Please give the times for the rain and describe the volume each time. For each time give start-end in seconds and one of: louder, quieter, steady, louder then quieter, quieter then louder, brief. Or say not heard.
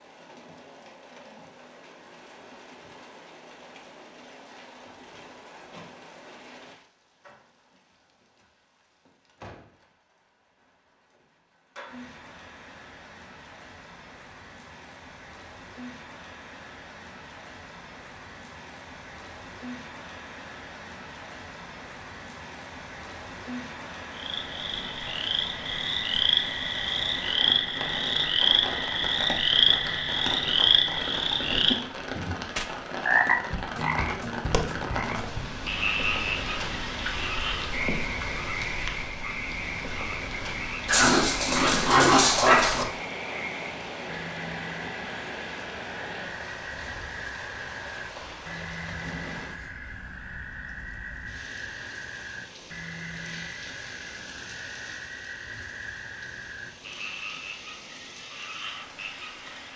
0.0-59.7 louder then quieter.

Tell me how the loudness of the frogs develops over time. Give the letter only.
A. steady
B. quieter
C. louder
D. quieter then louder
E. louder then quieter
B.